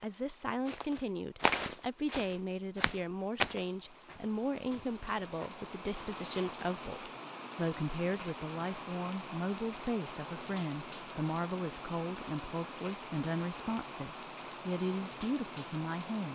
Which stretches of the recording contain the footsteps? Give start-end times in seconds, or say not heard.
0.7-5.5.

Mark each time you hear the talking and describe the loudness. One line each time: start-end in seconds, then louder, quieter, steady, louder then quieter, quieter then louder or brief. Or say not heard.
0.0-16.3 steady.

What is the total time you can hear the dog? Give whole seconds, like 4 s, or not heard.
not heard.